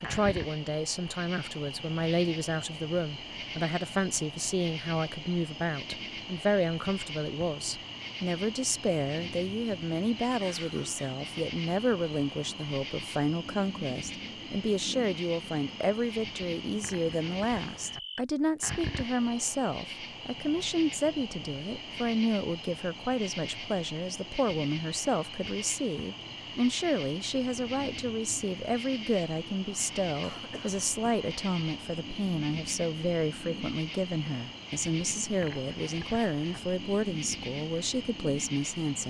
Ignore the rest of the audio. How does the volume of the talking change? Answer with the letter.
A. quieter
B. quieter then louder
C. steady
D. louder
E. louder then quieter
C.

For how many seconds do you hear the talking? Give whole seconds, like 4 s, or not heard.
39 s.